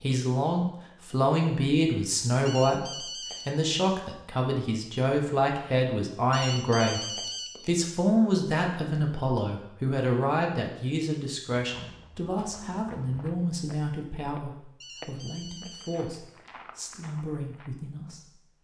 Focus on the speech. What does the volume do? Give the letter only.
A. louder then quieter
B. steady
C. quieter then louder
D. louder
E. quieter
E.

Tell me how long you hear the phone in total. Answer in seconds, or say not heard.
4 s.